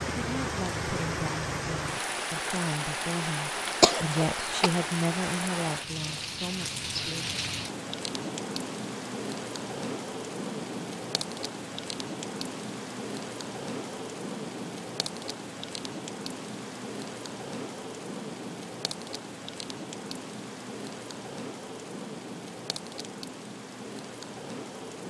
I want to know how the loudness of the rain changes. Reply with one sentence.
The volume of the rain goes down.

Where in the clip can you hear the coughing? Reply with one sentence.
The coughing can be heard from 3.8 to 4.7 s.